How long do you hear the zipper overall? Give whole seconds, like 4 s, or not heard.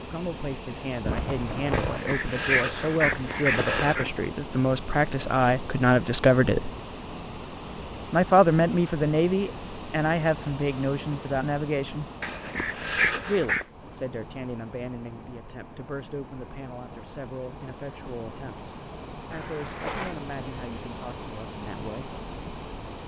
2 s.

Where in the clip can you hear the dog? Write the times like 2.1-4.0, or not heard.
1.7-4.1, 12.2-13.7.